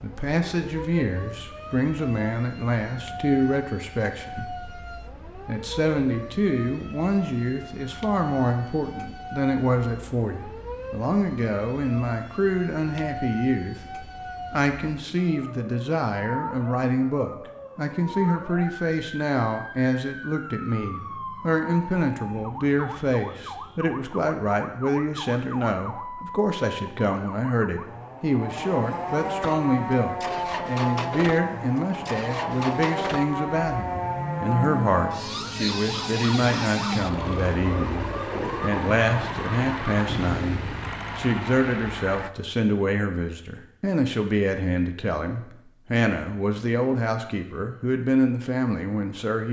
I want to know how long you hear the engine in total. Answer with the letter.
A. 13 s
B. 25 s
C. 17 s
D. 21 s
A.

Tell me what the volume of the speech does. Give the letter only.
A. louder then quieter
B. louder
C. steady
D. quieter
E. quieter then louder
C.